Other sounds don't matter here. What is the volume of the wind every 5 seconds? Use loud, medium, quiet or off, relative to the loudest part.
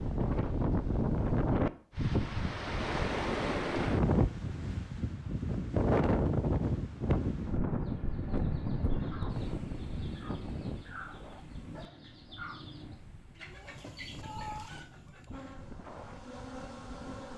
loud, loud, quiet, quiet.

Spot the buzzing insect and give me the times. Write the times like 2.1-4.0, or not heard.
15.3-17.3.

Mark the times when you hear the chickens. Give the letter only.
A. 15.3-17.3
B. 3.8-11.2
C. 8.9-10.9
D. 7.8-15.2
D.